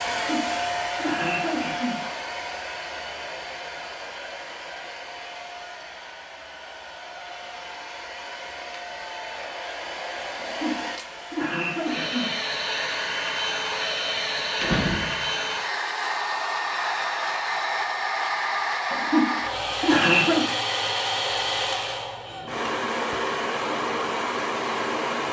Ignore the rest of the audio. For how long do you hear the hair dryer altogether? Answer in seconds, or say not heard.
25 s.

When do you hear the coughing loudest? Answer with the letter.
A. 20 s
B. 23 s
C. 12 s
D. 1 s
A.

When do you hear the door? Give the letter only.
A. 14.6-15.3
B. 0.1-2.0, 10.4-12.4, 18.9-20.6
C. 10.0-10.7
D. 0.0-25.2
A.